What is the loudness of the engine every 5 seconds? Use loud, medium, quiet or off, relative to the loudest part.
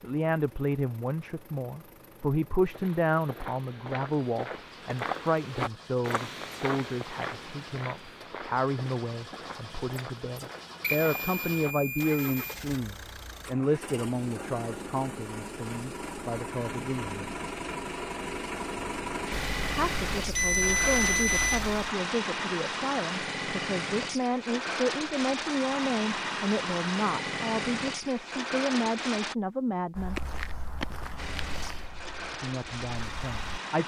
quiet, quiet, medium, loud, loud, loud, medium.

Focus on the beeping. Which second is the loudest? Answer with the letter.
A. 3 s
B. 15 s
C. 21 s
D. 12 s
C.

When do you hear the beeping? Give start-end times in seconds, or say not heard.
10.8-12.6, 19.3-21.9.